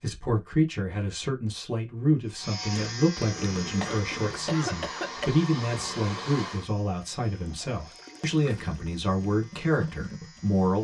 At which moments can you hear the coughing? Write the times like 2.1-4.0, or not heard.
3.8-5.3.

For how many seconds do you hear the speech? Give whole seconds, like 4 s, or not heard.
11 s.